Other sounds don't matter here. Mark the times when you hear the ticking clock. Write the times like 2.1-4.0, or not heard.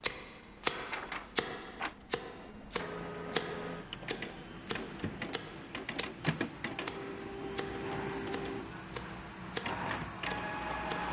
0.0-11.0.